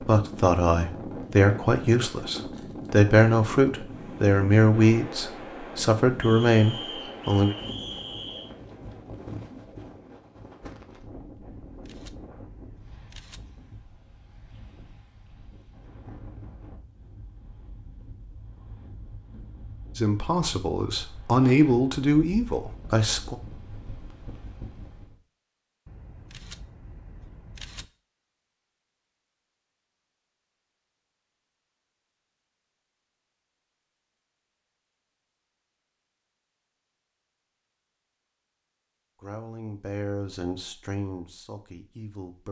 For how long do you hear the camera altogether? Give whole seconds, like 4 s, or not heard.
4 s.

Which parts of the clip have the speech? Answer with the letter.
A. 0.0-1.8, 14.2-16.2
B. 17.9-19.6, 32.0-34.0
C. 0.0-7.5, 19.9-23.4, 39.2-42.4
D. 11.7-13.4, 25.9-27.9
C.